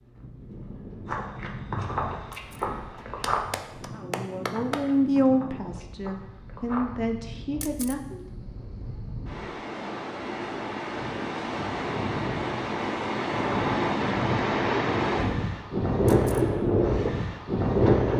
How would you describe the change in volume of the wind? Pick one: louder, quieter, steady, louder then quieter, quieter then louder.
louder.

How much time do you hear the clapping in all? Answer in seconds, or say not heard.
2 s.